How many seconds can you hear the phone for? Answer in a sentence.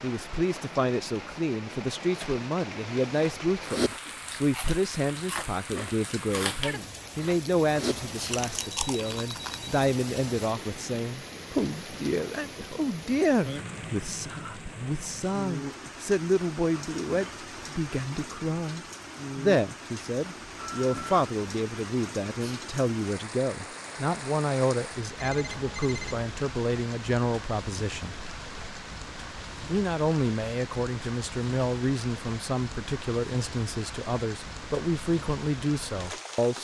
The phone can be heard for 3 seconds in total.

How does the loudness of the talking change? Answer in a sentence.
The volume of the talking stays about the same.